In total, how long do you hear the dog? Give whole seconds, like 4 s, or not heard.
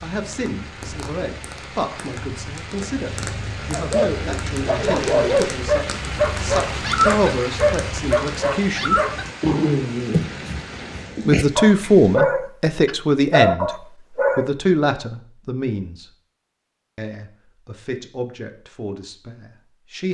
11 s.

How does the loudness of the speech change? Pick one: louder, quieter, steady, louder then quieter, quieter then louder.
louder then quieter.